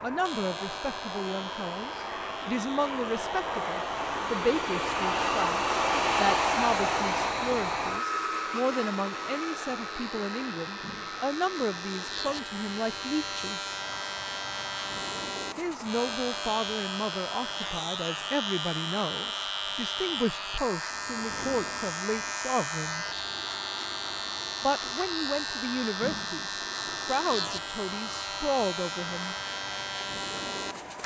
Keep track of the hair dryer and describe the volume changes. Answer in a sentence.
The loudness of the hair dryer goes down.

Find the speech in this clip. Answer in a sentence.
You can hear the speech from 0.0 to 13.6 s, from 15.6 to 23.2 s and from 24.6 to 29.4 s.